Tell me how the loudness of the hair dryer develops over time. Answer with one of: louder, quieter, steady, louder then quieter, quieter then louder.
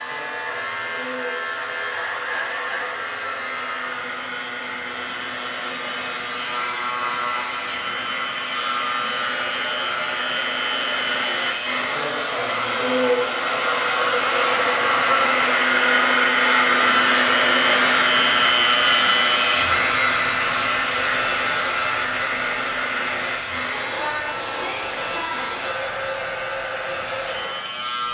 louder then quieter.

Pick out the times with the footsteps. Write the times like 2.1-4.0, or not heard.
not heard.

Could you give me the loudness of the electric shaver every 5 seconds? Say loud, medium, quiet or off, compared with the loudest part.
medium, medium, medium, loud, medium, medium.